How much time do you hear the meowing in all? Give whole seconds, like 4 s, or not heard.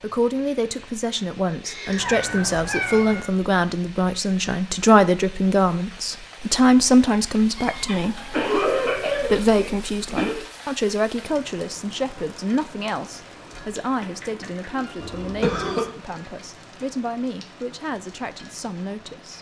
4 s.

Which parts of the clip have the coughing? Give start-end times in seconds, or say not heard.
1.6-2.1, 8.3-10.4, 15.0-15.8.